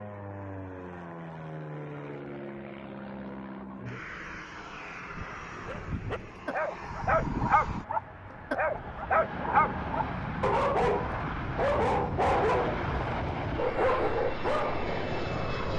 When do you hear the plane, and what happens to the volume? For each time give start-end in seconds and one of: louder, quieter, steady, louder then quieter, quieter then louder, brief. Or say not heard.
0.0-15.7 louder.